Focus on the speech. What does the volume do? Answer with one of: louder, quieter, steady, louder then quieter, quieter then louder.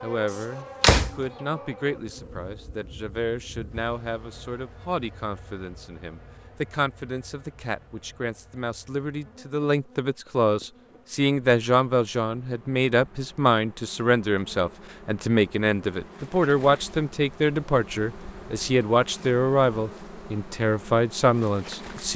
louder.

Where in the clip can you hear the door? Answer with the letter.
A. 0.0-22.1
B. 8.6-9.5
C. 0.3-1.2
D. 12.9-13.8
C.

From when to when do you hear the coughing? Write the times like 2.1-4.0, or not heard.
not heard.